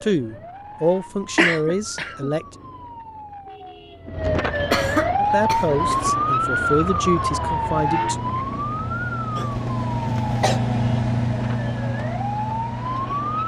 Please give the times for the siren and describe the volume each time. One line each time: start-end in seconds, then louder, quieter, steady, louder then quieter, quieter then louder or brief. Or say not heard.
0.0-13.4 louder then quieter.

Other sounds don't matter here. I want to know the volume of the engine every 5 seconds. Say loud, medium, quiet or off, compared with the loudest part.
off, medium, loud.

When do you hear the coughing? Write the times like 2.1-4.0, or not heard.
1.4-2.3, 4.7-6.2, 9.3-10.6.